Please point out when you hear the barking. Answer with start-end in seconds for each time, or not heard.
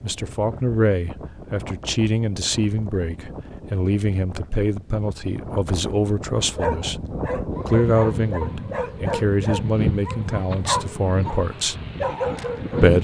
6.5-12.9.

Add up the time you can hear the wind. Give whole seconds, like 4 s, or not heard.
13 s.